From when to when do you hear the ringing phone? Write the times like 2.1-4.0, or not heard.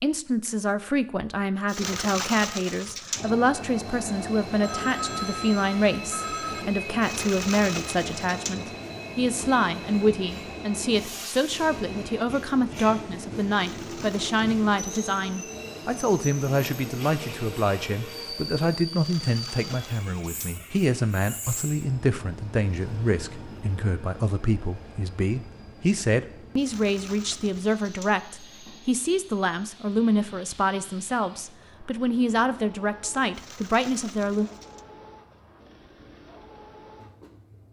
4.6-6.7.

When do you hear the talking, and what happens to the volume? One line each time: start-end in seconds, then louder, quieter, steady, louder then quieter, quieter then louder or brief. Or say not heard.
0.0-34.5 steady.